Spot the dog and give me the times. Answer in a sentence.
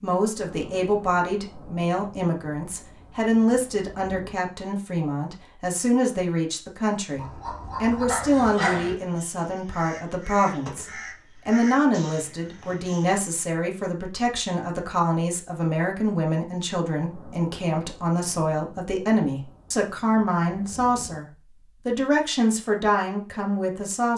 The dog can be heard from 7.2 to 8.9 s.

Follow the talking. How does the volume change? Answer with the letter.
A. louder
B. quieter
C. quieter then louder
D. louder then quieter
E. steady
E.